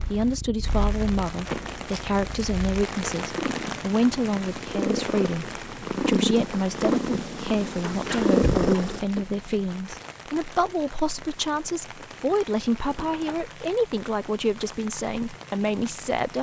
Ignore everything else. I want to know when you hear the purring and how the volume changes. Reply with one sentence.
You can hear the purring from 0.0 to 9.0 s, getting louder.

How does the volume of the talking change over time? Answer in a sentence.
The loudness of the talking stays about the same.